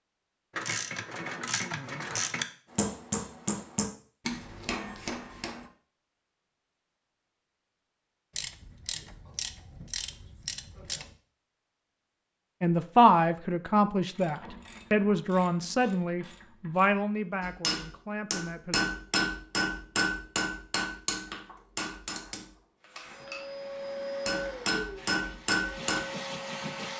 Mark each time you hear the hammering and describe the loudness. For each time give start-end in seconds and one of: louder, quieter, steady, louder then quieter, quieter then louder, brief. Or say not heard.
2.8-5.7 brief
17.4-26.0 quieter then louder.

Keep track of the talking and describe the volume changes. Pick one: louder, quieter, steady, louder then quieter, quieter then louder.
quieter.